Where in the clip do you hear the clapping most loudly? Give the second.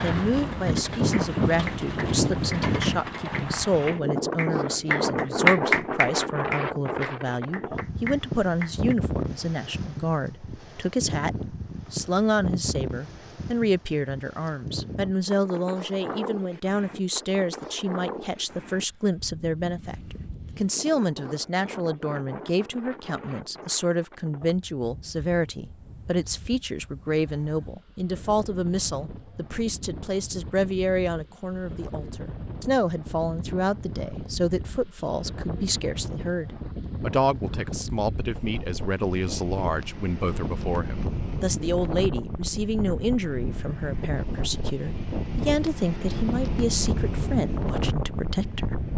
6 s.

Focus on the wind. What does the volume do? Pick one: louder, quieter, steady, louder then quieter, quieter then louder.
quieter then louder.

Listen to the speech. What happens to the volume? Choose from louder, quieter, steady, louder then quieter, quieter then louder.
steady.